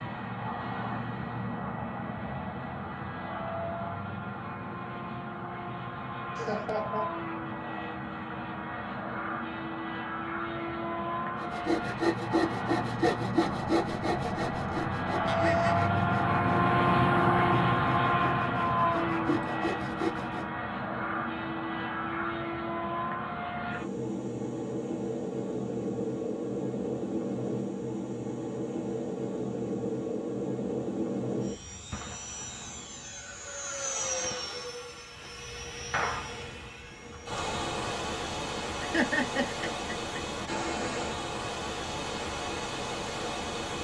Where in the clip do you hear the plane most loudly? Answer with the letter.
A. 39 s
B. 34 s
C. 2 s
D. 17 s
D.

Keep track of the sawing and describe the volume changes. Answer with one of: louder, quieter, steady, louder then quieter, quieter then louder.
quieter then louder.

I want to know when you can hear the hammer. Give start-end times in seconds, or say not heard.
not heard.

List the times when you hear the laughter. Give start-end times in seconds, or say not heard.
6.3-7.1, 15.2-15.9, 38.8-40.2.